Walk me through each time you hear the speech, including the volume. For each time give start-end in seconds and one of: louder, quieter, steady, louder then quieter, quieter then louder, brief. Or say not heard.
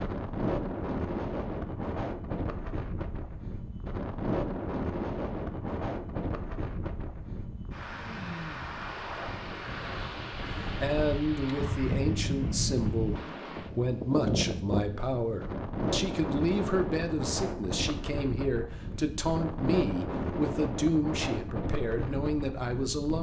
10.6-23.1 steady.